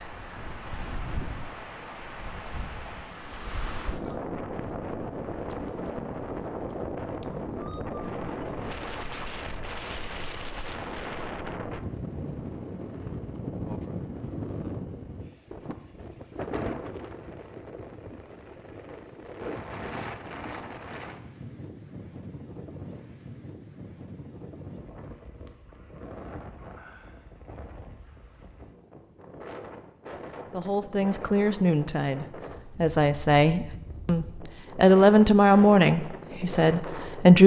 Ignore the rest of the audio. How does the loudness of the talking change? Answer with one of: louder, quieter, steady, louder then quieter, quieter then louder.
louder then quieter.